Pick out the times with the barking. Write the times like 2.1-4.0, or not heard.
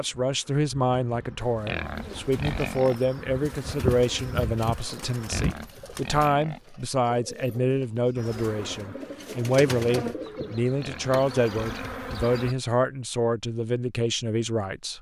not heard.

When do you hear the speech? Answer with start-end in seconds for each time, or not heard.
0.0-14.9.